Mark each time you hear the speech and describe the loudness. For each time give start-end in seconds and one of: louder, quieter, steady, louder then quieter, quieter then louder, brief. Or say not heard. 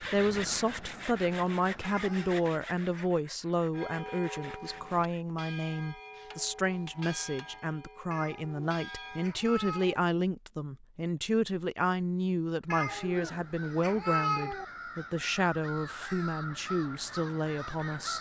0.0-18.1 steady.